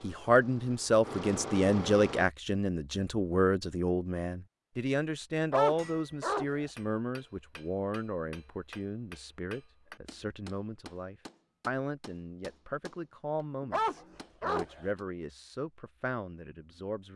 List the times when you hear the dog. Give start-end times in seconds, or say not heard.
5.5-6.7, 13.7-14.9.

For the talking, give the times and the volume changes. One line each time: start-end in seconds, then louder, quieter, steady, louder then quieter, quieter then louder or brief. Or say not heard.
0.0-17.1 quieter.